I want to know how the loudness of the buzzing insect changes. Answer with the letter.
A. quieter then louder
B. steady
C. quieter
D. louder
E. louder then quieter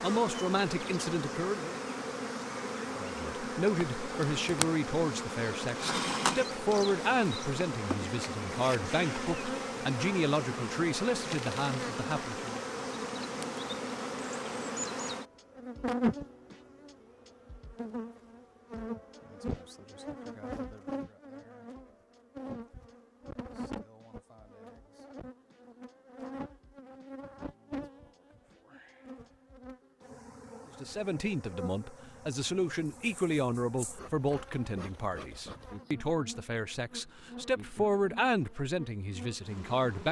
C.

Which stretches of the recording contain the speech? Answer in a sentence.
You can hear the speech from 0.0 to 1.8 s, from 3.0 to 12.6 s and from 30.8 to 40.0 s.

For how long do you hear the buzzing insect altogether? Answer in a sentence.
The buzzing insect can be heard for 40 seconds in total.